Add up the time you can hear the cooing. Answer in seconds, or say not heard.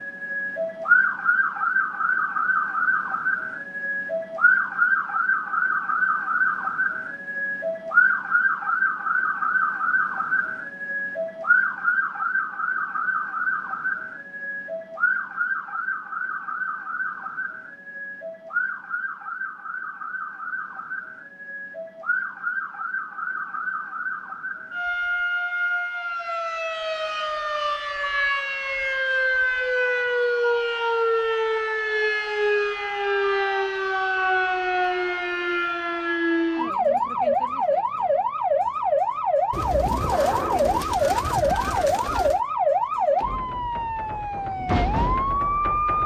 3 s.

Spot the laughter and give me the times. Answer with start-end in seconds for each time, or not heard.
not heard.